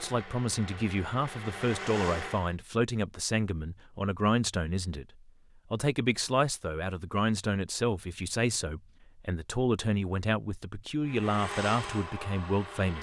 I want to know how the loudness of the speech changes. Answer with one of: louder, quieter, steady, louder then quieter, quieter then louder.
steady.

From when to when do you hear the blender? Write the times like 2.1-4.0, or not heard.
0.0-2.5, 11.0-12.9.